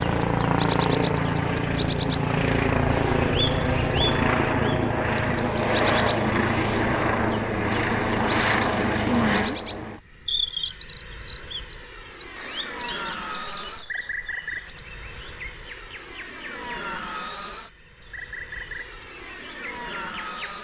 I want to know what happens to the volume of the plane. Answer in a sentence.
The volume of the plane goes down.